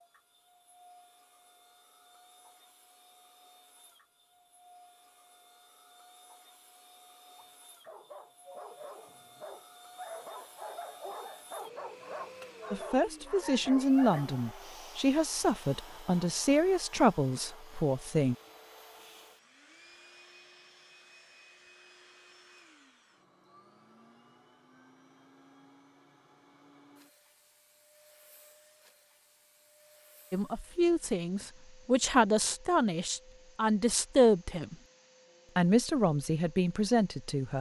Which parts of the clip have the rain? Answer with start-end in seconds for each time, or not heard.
not heard.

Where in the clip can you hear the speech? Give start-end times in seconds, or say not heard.
12.7-18.4, 30.3-34.8, 35.5-37.5.